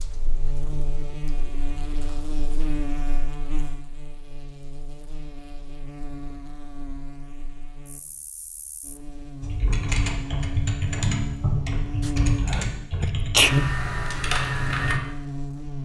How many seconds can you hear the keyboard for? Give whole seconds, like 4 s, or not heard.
8 s.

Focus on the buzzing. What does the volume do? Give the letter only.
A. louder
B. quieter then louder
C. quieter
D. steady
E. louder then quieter
B.